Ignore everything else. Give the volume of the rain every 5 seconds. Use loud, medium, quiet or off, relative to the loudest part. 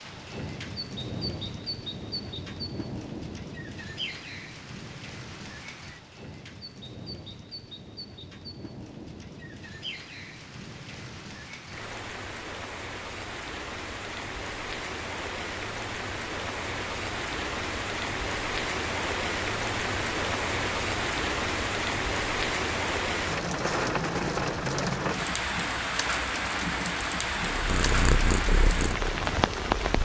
medium, quiet, medium, loud, loud, loud.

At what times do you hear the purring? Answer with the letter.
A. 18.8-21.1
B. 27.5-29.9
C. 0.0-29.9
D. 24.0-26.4
B.